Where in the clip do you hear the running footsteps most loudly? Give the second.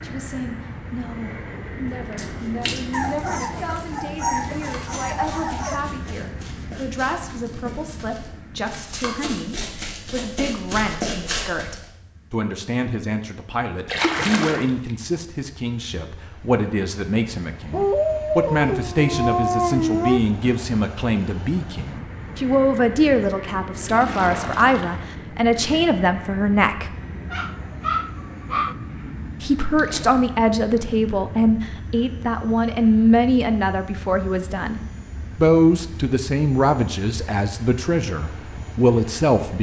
11 s.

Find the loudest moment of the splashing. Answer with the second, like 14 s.
14 s.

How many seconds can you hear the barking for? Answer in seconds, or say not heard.
7 s.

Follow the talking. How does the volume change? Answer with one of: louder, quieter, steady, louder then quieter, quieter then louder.
louder.